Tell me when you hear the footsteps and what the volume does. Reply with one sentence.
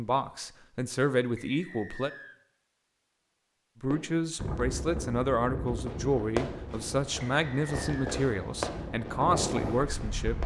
The footsteps can't be heard in this clip.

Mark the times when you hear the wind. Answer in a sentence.
You can hear the wind from 4.3 to 10.4 s.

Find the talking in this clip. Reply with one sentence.
The talking can be heard from 0.0 to 2.1 s and from 3.8 to 10.4 s.